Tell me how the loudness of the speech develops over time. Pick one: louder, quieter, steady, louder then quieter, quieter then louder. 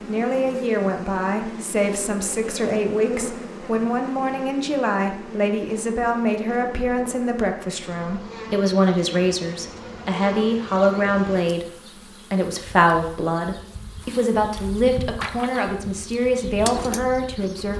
steady.